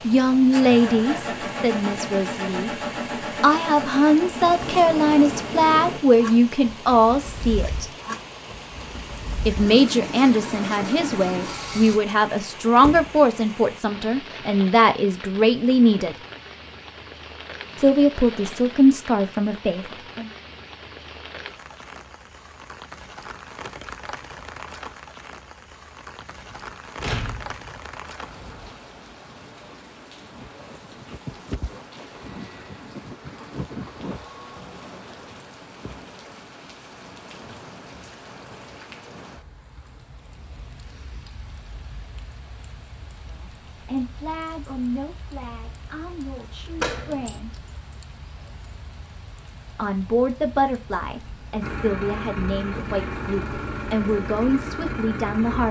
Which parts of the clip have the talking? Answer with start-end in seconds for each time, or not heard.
0.0-2.7, 3.4-7.8, 9.4-16.1, 17.8-20.3, 43.4-47.6, 49.8-55.6.